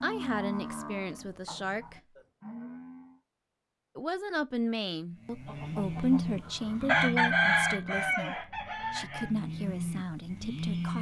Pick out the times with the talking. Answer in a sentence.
The talking can be heard from 0.0 to 2.0 s and from 4.0 to 10.9 s.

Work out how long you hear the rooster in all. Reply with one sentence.
You can hear the rooster for 4 seconds altogether.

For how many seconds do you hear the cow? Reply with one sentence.
The cow can be heard for 9 seconds in total.